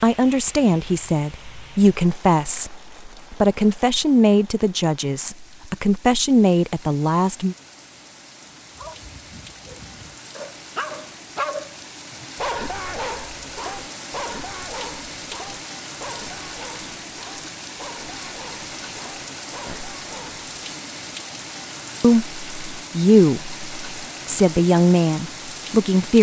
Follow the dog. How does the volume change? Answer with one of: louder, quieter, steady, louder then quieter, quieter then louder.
louder then quieter.